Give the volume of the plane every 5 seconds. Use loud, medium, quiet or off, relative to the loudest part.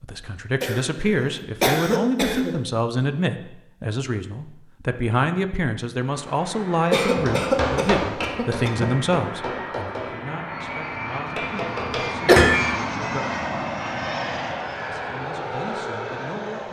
off, medium, loud, loud.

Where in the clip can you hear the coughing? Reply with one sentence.
You can hear the coughing from 0.6 to 2.6 s, from 6.9 to 8.8 s and from 11.8 to 12.5 s.